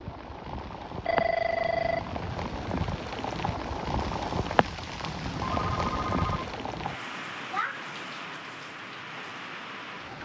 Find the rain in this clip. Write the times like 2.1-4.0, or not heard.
0.0-10.2.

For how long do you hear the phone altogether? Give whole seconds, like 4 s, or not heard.
2 s.